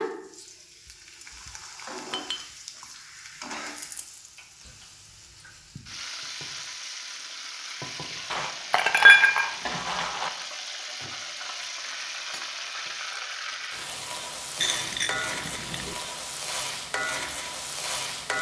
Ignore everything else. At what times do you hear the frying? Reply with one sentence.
The frying can be heard from 0.0 to 18.3 s.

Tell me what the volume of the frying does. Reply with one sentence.
The volume of the frying goes up.